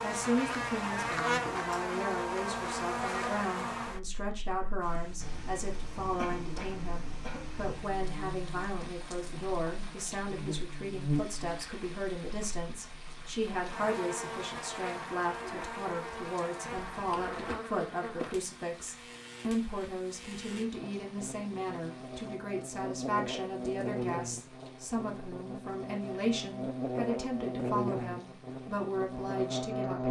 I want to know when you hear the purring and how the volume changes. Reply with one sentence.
You can't hear the purring here.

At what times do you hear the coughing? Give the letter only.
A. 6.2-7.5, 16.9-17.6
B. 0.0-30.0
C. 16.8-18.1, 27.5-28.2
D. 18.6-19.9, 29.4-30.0
A.